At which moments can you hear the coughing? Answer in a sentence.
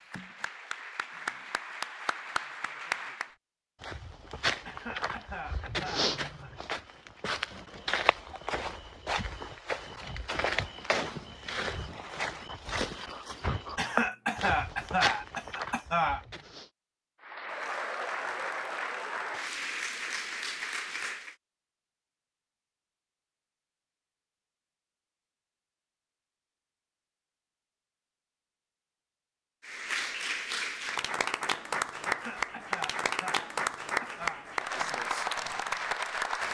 You can hear the coughing from 4.7 to 6.5 s, from 13.8 to 16.2 s and from 32.0 to 34.5 s.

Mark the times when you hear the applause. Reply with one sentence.
The applause can be heard from 0.0 to 3.4 s, from 17.2 to 21.4 s and from 29.6 to 36.4 s.